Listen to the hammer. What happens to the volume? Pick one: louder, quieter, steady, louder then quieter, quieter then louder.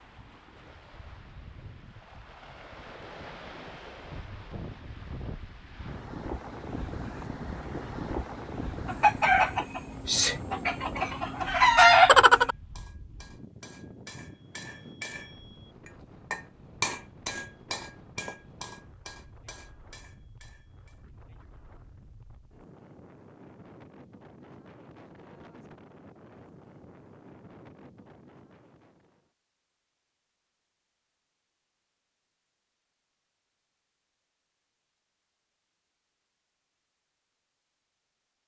louder then quieter.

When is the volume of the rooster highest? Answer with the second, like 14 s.
12 s.